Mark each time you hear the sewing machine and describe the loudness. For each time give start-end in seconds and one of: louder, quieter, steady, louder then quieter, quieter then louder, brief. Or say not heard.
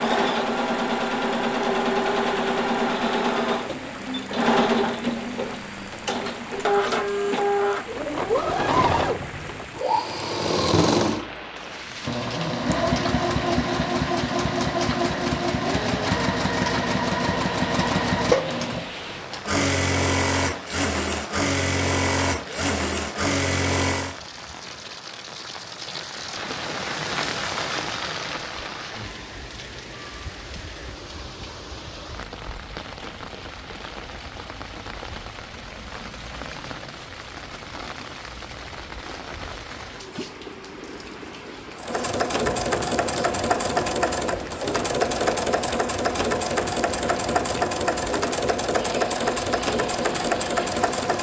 0.0-24.1 steady
41.8-51.1 steady.